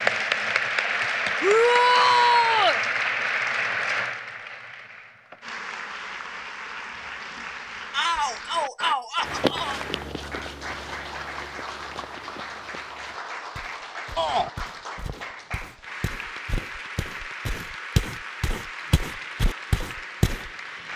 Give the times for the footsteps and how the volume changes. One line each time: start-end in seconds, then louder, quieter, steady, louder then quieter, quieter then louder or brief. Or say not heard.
9.2-20.5 quieter then louder.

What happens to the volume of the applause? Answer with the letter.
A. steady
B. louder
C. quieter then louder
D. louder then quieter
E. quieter
E.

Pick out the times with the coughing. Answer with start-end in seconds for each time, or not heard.
not heard.